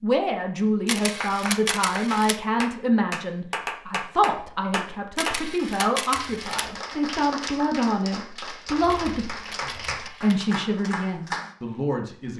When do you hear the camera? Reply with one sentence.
The camera can be heard from 0.8 to 2.4 s, from 5.2 to 6.7 s and from 8.8 to 10.4 s.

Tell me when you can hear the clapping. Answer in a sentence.
The clapping can be heard from 1.2 to 11.6 s.